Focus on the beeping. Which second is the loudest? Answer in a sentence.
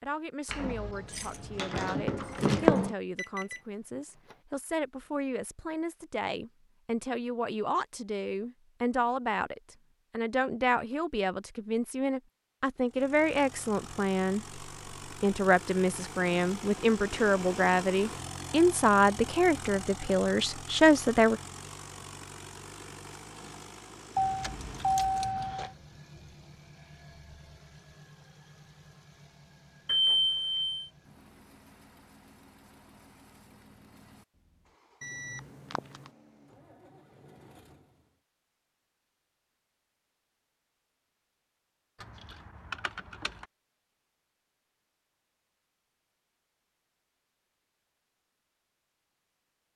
The volume of the beeping peaks at 30 seconds.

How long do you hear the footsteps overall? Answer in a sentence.
You can't hear the footsteps here.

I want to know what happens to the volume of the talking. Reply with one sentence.
The loudness of the talking goes up.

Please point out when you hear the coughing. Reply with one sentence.
The coughing can't be heard in this clip.